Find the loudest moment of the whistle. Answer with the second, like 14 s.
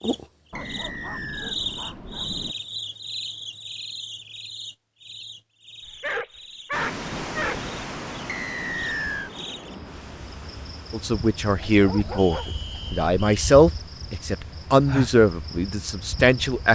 9 s.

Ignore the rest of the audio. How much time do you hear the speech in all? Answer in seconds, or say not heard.
6 s.